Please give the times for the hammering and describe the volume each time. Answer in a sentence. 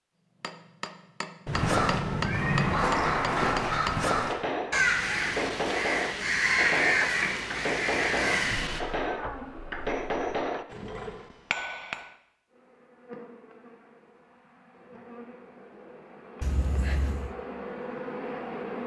You can hear the hammering from 0.4 to 12.1 s, at a steady volume.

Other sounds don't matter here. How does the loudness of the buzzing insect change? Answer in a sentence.
The volume of the buzzing insect goes down, then up.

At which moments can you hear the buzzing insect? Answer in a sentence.
You can hear the buzzing insect from 12.5 to 18.8 s.